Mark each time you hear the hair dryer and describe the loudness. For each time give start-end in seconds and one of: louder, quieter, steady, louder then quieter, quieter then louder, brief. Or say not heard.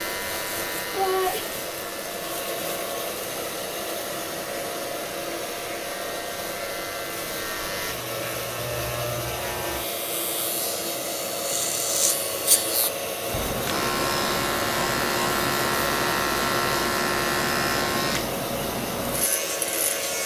0.0-20.2 steady.